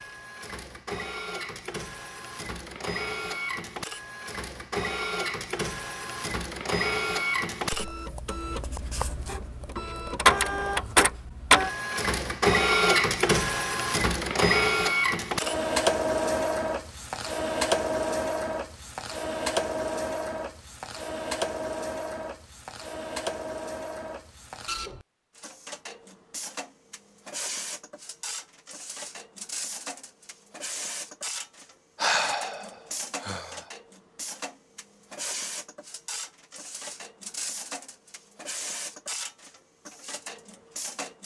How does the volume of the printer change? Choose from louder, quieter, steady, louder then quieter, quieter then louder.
louder then quieter.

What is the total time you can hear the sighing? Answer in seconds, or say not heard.
2 s.